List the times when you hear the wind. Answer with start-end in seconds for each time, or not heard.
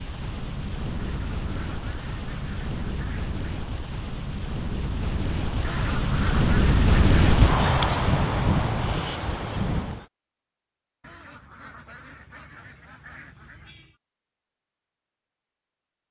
0.0-10.1.